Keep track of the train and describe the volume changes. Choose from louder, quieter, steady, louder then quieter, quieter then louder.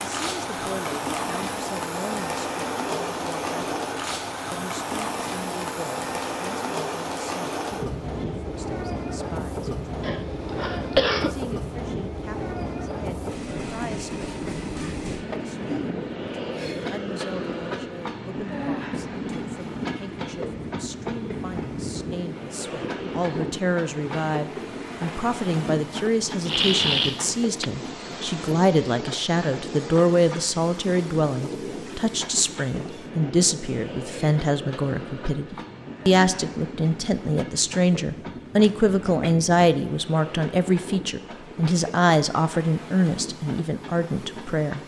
quieter.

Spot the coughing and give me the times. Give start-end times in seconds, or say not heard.
10.0-11.3, 26.4-27.7, 38.6-39.4.